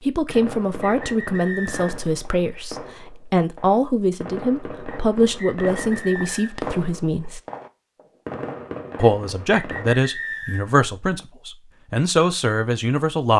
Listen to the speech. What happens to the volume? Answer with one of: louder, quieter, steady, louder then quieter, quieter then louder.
steady.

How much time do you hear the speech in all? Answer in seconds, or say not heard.
12 s.